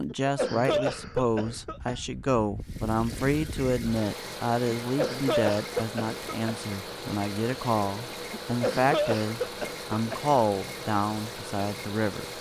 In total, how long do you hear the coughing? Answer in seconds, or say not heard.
6 s.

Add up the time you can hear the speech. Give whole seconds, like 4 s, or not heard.
12 s.